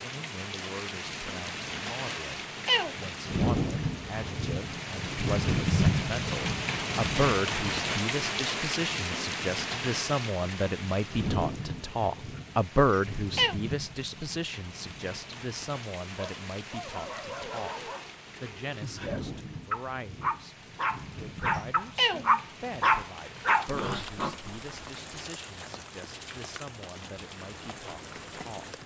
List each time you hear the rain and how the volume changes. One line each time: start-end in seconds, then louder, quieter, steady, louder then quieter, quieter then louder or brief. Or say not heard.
0.0-28.8 quieter.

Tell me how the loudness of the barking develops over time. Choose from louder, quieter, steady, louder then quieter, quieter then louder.
louder.